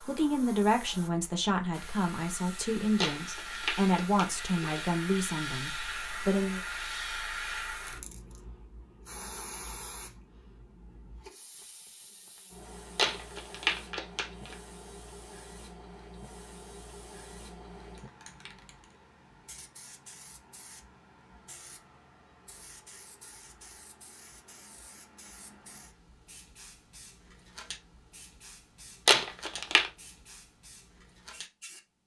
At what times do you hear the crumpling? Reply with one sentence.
The crumpling can be heard from 3.0 to 4.8 s, from 12.9 to 14.6 s and from 29.1 to 29.9 s.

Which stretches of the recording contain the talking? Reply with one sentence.
The talking can be heard from 0.1 to 6.6 s.